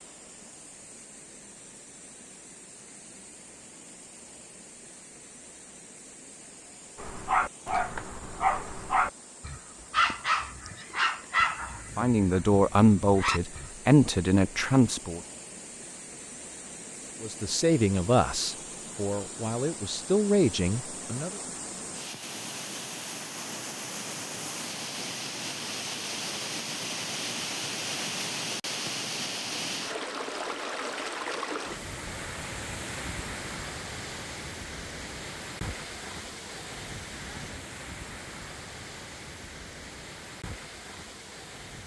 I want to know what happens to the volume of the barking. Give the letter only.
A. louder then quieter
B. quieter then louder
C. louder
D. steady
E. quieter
E.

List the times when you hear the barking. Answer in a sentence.
You can hear the barking from 7.0 to 13.7 s.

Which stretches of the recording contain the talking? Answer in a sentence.
The talking can be heard from 11.9 to 15.2 s and from 17.2 to 21.4 s.